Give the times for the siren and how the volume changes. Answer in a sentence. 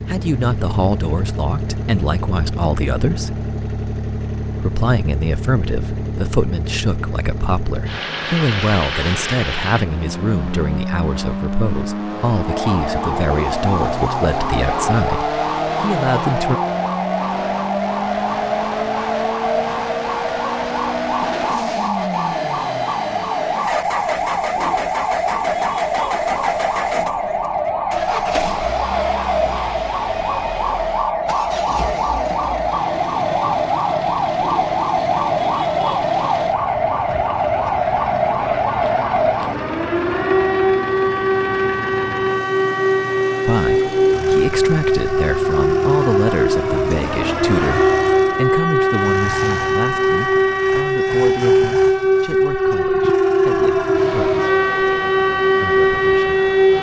The siren can be heard from 12.4 to 56.7 s, getting louder.